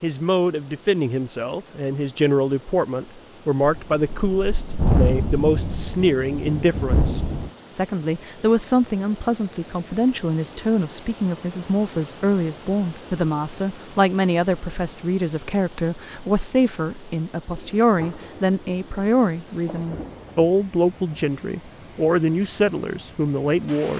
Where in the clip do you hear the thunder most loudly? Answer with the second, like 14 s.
5 s.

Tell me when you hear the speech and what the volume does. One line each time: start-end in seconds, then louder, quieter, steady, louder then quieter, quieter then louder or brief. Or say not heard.
0.0-23.9 steady.